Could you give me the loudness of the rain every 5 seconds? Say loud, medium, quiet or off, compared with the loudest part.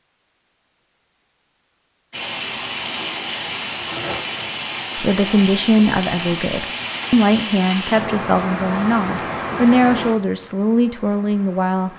loud, loud, medium.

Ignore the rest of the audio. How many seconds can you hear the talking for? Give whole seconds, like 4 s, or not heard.
7 s.